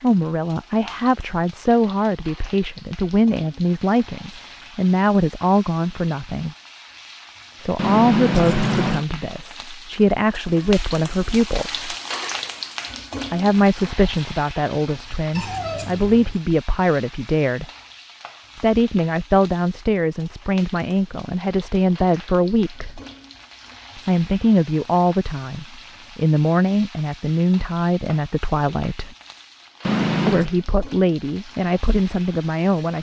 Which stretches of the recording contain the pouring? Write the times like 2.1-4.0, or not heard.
7.8-9.1, 15.3-16.4, 29.8-30.5.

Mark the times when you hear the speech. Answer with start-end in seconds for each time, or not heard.
0.0-6.5, 7.6-11.8, 13.3-17.6, 18.6-23.0, 23.9-29.1, 30.2-32.9.